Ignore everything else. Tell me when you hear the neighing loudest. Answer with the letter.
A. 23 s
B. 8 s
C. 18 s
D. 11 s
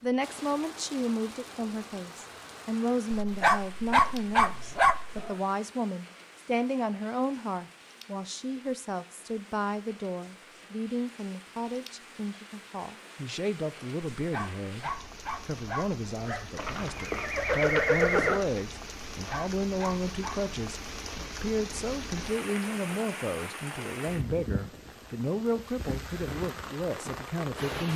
C.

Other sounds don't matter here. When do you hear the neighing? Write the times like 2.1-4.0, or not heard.
16.6-18.4.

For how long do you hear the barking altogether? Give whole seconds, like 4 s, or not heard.
6 s.